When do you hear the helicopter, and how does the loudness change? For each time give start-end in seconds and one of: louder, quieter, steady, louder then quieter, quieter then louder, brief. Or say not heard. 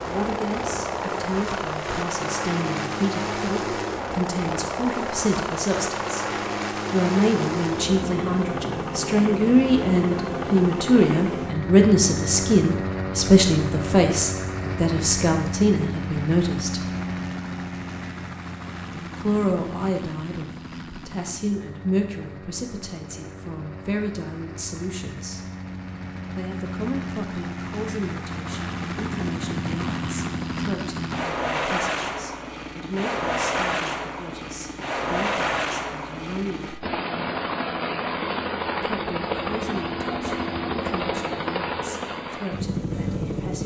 0.0-43.6 quieter then louder.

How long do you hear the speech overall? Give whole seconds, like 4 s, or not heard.
38 s.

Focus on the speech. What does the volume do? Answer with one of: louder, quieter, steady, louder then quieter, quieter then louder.
louder then quieter.